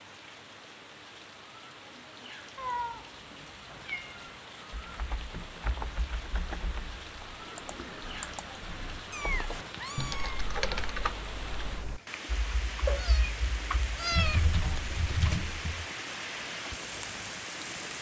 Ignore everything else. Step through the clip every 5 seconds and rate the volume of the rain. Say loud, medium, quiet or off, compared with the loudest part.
medium, medium, loud, loud.